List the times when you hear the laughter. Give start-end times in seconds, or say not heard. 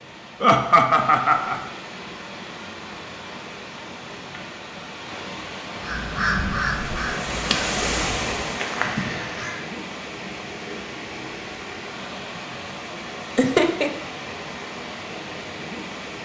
0.4-1.6, 13.3-13.9.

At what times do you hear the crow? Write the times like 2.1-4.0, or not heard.
5.8-9.6.